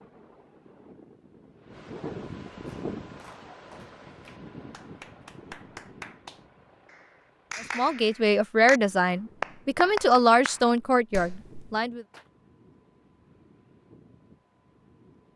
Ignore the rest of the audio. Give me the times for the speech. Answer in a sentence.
The speech can be heard from 7.8 to 12.1 s.